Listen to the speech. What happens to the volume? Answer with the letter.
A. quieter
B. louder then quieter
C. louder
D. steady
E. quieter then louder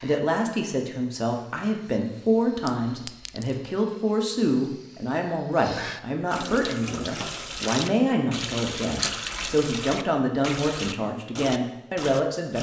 D.